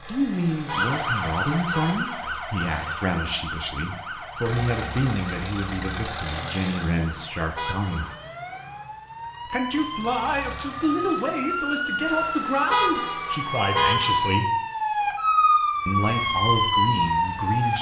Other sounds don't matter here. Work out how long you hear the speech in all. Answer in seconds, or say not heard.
15 s.